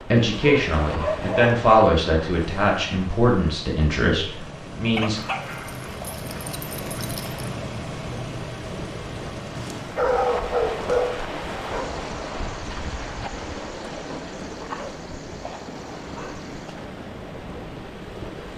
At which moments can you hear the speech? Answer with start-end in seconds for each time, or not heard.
0.0-5.2.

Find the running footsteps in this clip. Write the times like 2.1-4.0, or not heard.
not heard.